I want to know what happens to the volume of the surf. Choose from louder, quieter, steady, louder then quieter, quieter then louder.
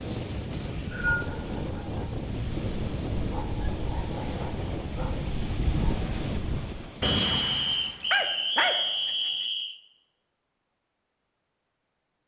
steady.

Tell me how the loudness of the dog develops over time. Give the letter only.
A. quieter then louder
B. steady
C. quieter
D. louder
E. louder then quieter
D.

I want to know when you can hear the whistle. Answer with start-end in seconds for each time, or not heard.
0.5-1.2, 7.0-9.8.